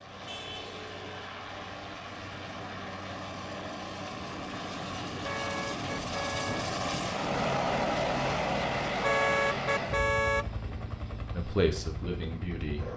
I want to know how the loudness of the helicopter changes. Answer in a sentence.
The volume of the helicopter goes up, then down.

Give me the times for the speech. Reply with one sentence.
You can hear the speech from 11.3 to 12.9 s.